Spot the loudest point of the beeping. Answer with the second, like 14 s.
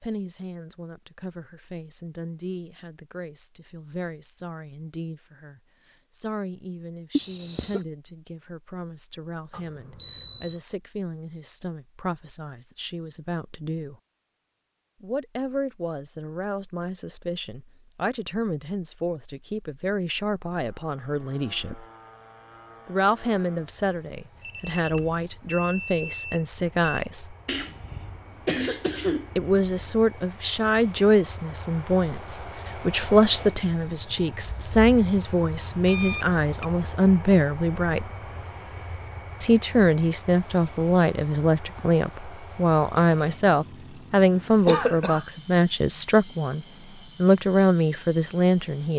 10 s.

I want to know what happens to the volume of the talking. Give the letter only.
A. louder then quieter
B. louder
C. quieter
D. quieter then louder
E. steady
B.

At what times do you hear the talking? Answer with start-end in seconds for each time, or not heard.
0.0-13.9, 15.0-21.9, 22.9-27.4, 29.4-38.1, 39.4-48.9.